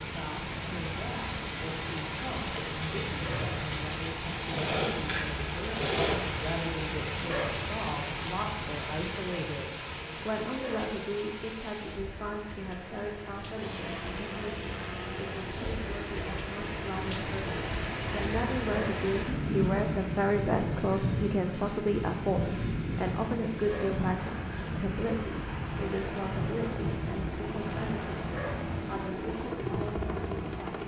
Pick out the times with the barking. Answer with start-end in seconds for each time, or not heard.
3.1-3.5, 7.2-7.6, 10.5-10.9, 18.6-19.1, 23.6-24.0, 28.2-28.6.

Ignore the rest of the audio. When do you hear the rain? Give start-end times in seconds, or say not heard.
0.0-30.8.